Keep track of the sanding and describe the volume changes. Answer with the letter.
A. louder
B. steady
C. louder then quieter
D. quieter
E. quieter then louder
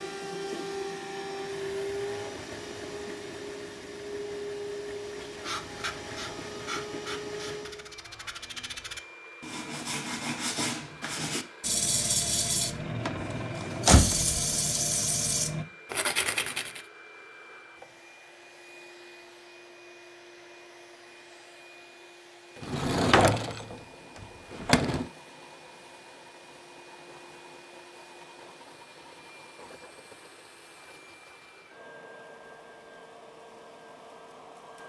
A.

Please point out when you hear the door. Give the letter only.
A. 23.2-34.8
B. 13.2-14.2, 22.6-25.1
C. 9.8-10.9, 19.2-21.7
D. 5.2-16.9
B.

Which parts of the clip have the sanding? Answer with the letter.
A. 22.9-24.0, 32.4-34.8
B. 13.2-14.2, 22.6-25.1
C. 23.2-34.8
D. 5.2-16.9
D.